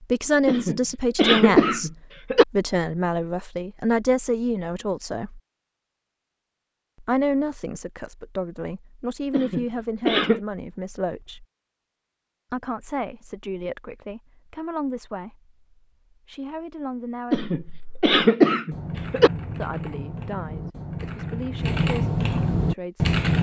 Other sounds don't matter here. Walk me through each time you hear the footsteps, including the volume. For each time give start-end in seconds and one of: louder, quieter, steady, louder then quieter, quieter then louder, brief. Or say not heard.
not heard.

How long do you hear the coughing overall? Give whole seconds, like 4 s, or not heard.
5 s.